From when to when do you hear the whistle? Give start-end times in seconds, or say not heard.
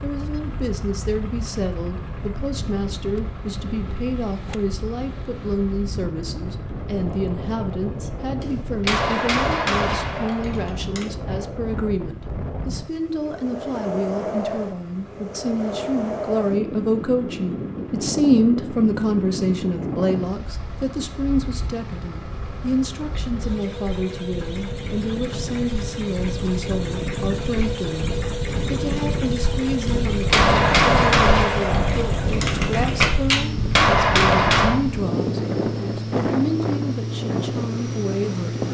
not heard.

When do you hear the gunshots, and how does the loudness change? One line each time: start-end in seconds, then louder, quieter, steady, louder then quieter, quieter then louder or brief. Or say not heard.
8.4-11.1 brief
29.9-34.8 quieter then louder.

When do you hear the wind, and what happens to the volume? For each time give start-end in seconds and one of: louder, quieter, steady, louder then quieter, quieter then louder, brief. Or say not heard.
0.0-38.6 louder.